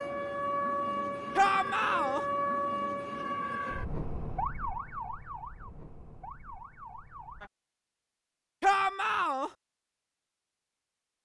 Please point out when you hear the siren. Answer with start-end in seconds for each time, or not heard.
0.0-7.5.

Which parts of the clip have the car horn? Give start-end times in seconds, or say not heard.
not heard.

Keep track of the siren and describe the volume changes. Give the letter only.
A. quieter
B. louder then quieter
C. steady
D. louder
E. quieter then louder
A.